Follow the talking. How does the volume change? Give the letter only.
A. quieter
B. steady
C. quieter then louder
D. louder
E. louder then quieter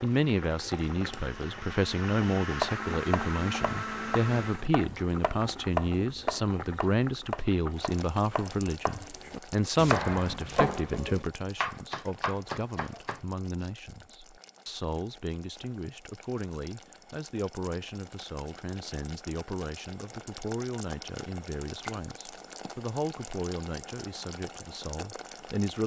A.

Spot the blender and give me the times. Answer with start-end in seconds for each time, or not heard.
0.0-4.7.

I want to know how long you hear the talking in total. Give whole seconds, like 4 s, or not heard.
26 s.